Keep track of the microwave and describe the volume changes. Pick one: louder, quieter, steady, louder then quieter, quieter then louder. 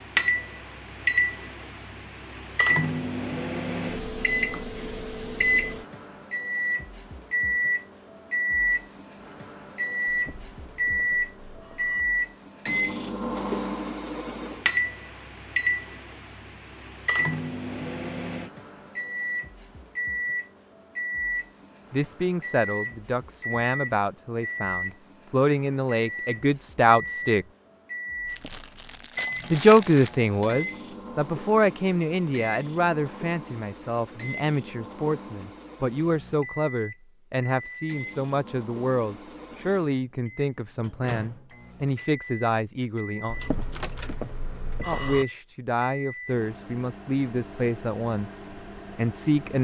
quieter.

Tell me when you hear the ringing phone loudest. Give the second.
45 s.